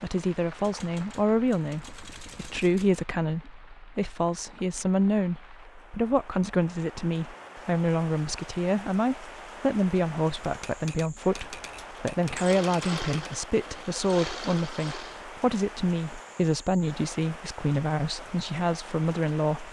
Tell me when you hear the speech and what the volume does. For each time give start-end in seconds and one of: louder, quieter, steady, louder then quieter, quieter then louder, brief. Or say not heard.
0.0-19.6 steady.